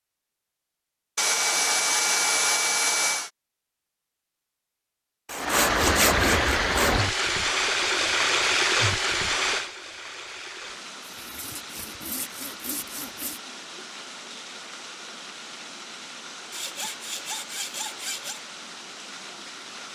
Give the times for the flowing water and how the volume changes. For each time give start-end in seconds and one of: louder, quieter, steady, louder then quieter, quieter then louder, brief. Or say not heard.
5.3-19.9 quieter.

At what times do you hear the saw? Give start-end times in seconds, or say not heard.
1.1-3.3, 5.2-7.0, 11.1-13.4, 16.5-18.4.